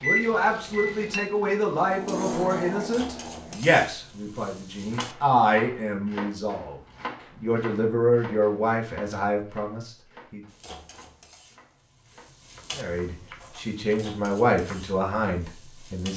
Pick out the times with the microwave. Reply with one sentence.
You can hear the microwave from 0.0 to 3.6 s.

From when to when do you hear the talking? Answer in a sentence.
The talking can be heard from 0.0 to 10.4 s and from 12.8 to 16.1 s.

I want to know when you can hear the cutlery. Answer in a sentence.
The cutlery can't be heard in this clip.